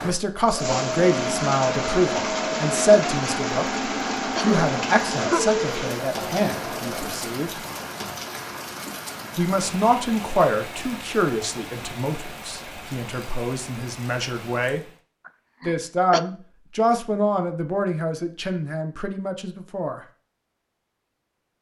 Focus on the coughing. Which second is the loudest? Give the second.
5 s.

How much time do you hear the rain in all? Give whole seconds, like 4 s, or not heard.
15 s.